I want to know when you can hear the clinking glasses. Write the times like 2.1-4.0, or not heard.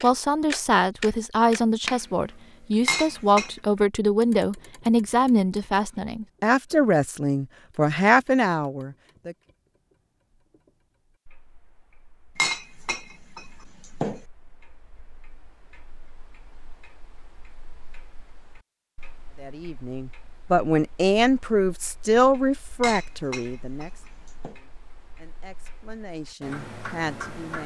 2.9-3.5, 12.3-14.2, 22.8-24.6.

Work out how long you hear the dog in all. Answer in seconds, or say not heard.
not heard.